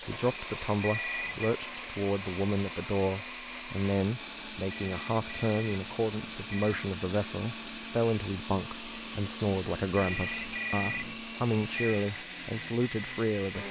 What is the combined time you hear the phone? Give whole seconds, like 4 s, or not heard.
5 s.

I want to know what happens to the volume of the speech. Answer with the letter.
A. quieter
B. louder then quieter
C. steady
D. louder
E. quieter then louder
C.